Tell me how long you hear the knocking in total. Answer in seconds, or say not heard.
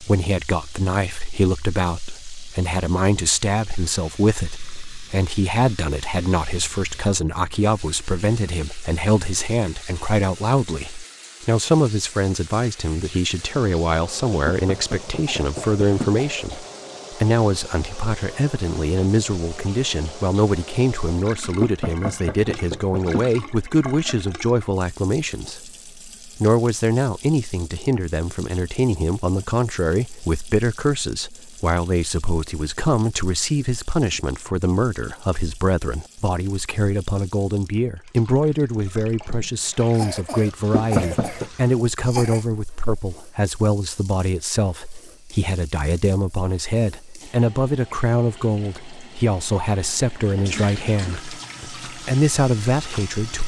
4 s.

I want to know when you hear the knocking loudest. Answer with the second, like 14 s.
41 s.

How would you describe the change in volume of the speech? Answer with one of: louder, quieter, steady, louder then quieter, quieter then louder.
steady.